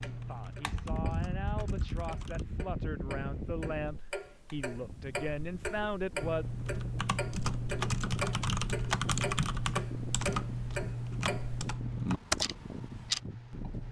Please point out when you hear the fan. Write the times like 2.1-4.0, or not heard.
0.0-13.8.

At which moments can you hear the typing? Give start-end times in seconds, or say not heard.
0.0-2.5, 6.2-13.8.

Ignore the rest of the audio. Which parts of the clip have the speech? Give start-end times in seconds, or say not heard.
0.1-6.5.